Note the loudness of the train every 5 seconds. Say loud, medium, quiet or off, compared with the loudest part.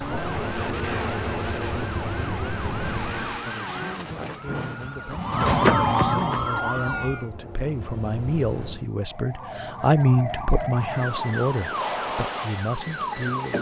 loud, medium, off.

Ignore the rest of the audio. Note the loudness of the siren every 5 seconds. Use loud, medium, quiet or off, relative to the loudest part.
medium, loud, medium.